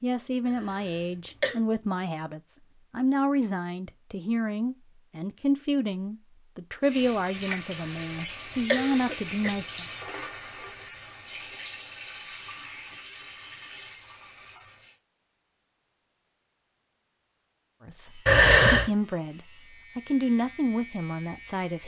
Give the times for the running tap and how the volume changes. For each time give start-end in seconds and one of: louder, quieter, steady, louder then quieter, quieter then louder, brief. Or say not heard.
6.8-15.0 quieter.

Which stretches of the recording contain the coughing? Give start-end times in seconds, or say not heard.
0.5-1.6, 7.8-9.5, 18.2-18.9.